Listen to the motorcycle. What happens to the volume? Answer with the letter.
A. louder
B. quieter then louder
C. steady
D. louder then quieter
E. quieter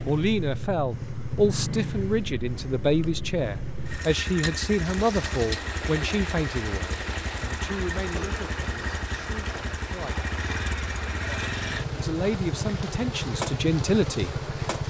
C.